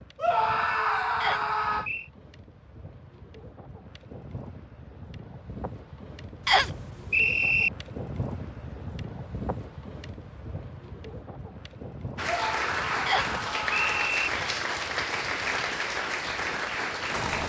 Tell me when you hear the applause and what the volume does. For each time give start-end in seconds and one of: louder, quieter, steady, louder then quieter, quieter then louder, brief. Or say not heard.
12.2-17.4 steady.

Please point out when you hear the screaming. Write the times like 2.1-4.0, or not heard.
0.1-1.9, 12.2-14.1.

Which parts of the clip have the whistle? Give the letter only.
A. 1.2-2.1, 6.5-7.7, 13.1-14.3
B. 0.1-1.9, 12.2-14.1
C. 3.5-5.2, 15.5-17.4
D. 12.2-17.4
A.